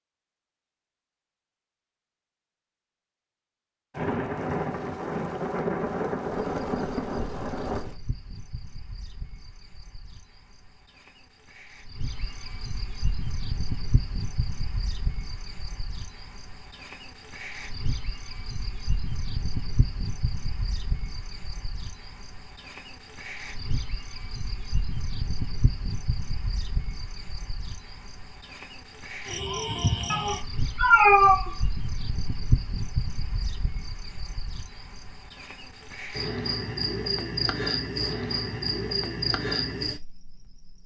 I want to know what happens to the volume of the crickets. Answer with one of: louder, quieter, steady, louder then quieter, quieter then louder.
louder.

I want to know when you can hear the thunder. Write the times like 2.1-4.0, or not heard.
3.9-8.0.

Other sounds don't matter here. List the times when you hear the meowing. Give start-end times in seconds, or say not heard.
30.1-31.6.